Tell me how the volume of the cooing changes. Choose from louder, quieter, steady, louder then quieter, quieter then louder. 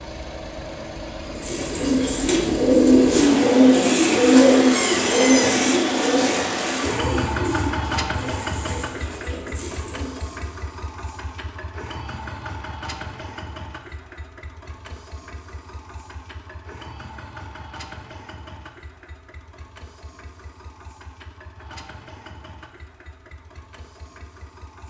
quieter.